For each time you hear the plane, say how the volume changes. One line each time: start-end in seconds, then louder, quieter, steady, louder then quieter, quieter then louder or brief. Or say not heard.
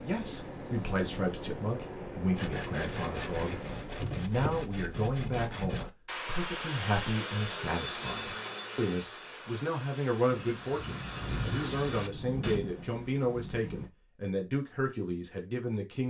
0.0-4.1 steady.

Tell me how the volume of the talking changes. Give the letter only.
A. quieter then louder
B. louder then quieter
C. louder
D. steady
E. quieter
D.